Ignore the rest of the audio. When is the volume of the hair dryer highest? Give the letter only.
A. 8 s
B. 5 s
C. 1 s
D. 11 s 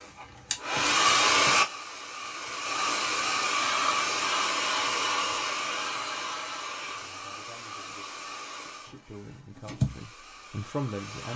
C.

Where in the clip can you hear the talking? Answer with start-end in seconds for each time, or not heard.
6.8-11.3.